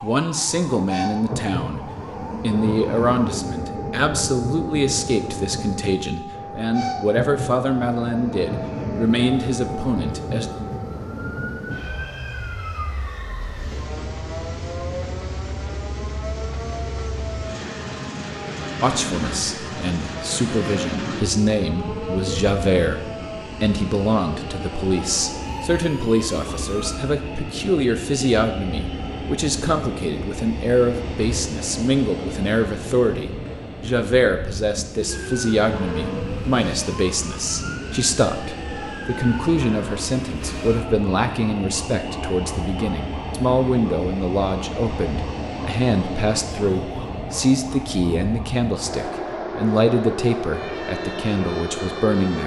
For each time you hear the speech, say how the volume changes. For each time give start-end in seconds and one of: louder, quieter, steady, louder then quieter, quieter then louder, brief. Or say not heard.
0.0-10.5 steady
18.8-52.4 steady.